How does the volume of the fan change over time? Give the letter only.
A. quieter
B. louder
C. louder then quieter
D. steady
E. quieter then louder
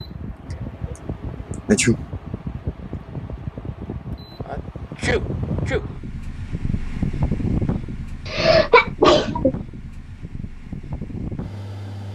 C.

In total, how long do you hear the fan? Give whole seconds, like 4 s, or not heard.
12 s.